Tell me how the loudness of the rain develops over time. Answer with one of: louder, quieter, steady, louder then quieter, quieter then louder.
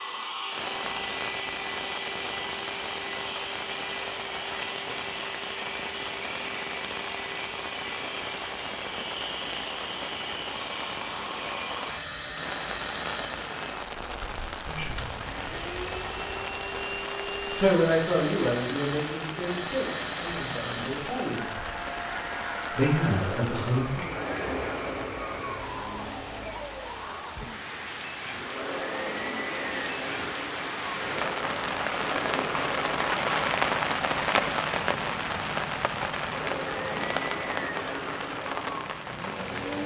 louder.